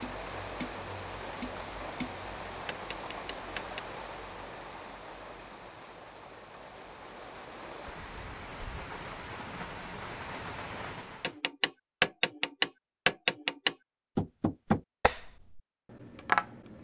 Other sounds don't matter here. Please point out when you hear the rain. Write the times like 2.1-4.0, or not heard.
0.0-11.4.